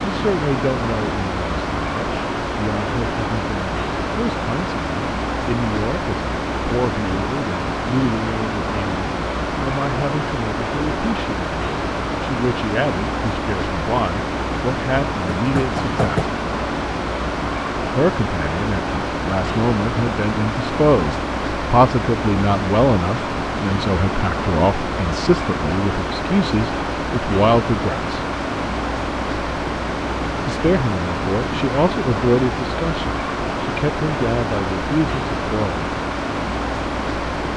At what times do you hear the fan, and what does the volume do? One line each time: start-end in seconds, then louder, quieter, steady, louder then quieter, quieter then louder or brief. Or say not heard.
0.0-37.5 steady.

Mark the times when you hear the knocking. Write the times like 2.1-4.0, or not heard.
15.3-16.4.